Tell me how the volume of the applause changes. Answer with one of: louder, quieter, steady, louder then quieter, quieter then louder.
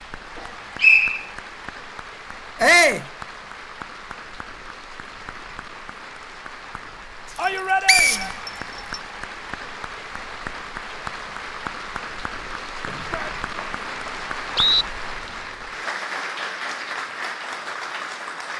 louder.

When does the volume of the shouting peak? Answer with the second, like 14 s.
3 s.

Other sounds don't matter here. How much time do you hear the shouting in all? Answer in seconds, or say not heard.
2 s.